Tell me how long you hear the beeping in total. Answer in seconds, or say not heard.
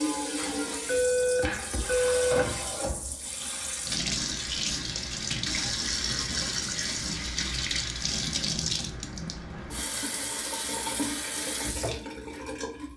2 s.